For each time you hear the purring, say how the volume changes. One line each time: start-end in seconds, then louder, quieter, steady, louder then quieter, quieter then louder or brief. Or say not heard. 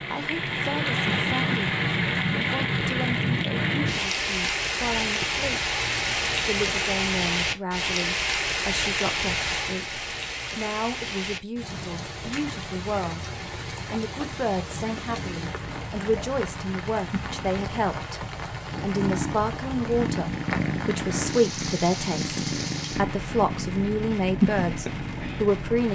14.7-25.9 louder.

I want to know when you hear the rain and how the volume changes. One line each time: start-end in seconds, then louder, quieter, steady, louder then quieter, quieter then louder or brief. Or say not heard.
0.0-25.9 quieter.